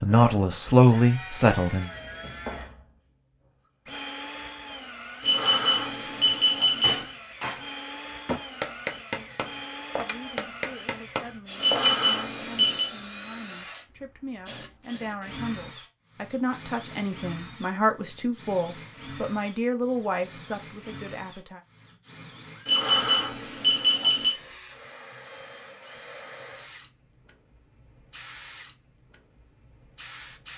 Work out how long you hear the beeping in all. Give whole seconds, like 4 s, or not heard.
5 s.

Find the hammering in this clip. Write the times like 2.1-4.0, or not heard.
6.8-12.0.